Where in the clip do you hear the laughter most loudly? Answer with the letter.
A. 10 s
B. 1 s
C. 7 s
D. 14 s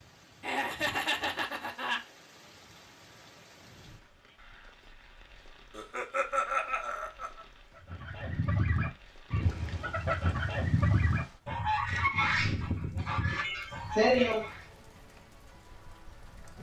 D.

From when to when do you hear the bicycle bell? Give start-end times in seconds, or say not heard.
not heard.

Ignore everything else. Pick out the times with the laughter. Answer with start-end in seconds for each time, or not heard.
0.4-2.0, 5.8-7.5, 13.4-14.4.